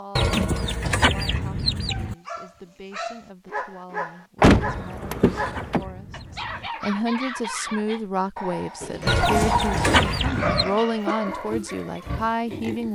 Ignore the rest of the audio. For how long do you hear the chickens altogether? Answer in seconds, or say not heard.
6 s.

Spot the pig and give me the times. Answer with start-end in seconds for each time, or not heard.
10.1-12.8.